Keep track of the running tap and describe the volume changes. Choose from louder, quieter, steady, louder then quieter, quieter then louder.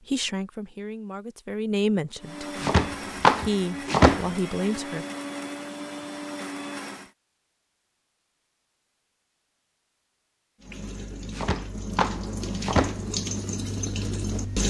louder.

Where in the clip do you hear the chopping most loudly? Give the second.
4 s.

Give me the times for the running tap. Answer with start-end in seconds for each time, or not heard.
10.6-14.6.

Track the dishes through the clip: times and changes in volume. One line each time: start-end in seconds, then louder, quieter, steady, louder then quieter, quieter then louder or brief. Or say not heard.
not heard.